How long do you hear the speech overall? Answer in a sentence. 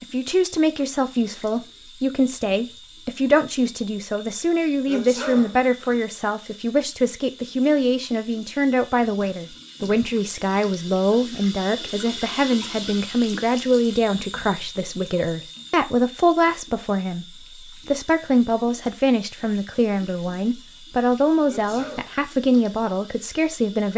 You can hear the speech for 24 seconds altogether.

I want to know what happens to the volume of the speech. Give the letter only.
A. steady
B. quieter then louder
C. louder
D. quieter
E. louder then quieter
A.